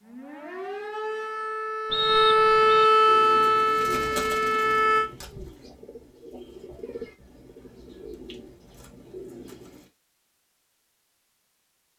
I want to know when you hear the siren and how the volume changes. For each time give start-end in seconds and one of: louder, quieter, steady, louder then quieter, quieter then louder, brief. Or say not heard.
0.0-5.1 louder then quieter.